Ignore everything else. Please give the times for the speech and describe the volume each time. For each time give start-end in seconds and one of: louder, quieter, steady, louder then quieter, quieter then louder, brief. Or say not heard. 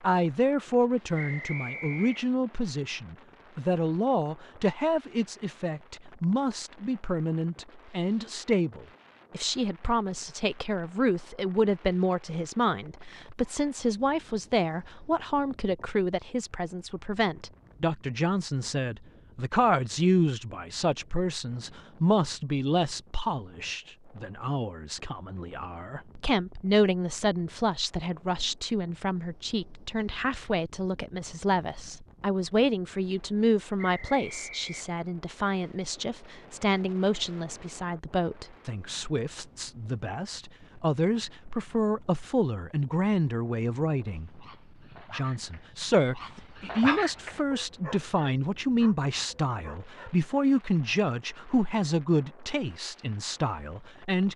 0.0-44.5 steady
45.1-54.3 quieter.